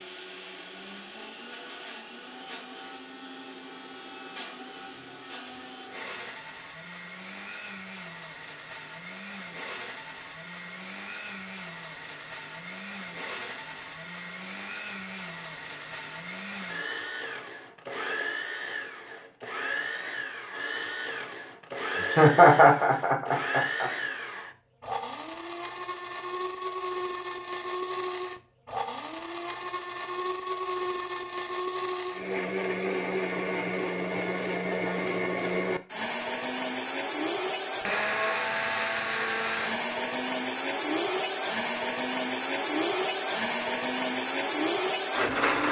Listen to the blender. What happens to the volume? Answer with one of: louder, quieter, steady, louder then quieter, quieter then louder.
louder.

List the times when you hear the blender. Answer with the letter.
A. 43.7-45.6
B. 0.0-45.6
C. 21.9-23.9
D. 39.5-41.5
B.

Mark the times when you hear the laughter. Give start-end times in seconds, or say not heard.
21.9-23.9.